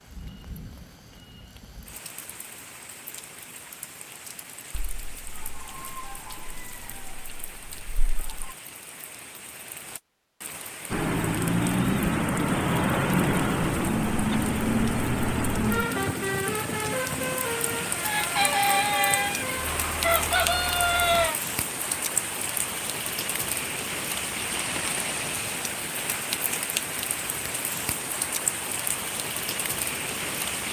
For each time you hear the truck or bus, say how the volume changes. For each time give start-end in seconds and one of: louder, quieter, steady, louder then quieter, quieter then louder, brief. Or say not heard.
10.9-21.3 quieter.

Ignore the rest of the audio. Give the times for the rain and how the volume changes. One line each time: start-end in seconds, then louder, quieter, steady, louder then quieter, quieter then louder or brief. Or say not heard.
0.0-30.6 louder.